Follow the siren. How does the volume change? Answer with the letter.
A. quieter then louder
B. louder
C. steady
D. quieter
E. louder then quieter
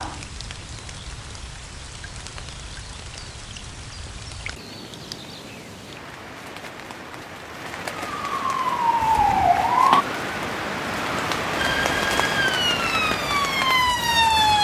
A.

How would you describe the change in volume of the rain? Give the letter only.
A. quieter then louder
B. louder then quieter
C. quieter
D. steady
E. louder
E.